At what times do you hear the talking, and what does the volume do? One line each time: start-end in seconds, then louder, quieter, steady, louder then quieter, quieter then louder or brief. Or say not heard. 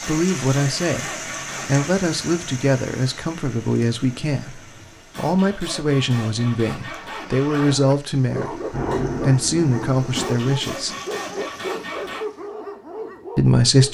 0.0-10.9 steady
13.3-13.8 brief.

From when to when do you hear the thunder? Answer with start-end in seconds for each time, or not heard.
8.3-10.2.